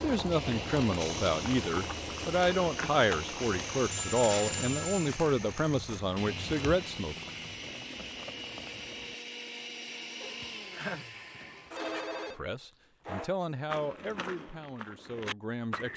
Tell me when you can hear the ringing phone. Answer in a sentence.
You can hear the ringing phone from 3.9 to 5.2 s and from 10.2 to 12.3 s.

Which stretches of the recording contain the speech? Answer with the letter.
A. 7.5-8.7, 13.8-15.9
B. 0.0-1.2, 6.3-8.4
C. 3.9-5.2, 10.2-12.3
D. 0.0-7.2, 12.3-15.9
D.